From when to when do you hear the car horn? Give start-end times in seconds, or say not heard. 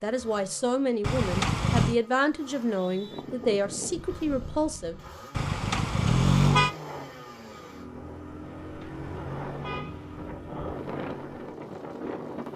1.0-1.9, 5.3-6.8, 8.6-10.3.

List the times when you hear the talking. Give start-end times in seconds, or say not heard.
0.0-5.0.